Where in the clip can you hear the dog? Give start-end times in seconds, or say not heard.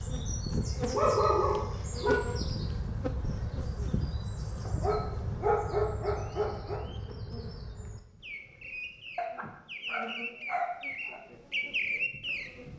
0.5-2.2, 4.7-6.8, 9.2-11.2.